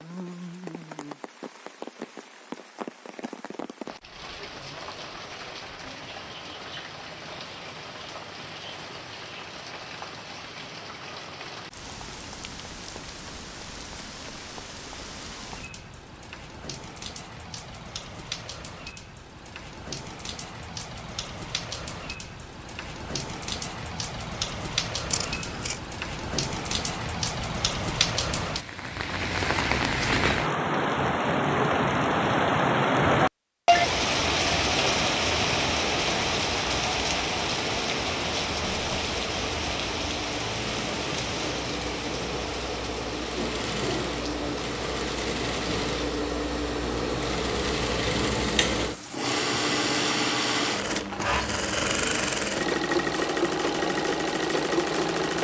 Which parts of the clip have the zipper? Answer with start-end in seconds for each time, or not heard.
not heard.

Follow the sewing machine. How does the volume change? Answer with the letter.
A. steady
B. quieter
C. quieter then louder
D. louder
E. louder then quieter
D.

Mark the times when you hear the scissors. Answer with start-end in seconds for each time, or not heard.
25.1-25.9.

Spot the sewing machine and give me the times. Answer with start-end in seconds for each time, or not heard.
38.8-55.3.